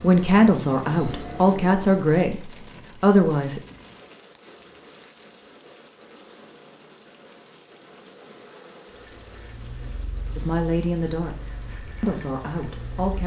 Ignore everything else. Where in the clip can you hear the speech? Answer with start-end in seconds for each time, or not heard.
0.0-3.6, 10.3-13.2.